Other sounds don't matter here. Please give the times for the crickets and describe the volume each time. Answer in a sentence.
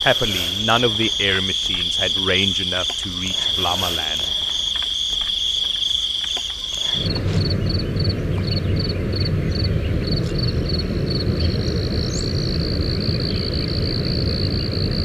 The crickets can be heard from 0.0 to 15.0 s, at a steady volume.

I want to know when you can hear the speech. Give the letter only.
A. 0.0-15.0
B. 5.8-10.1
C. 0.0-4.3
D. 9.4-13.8
C.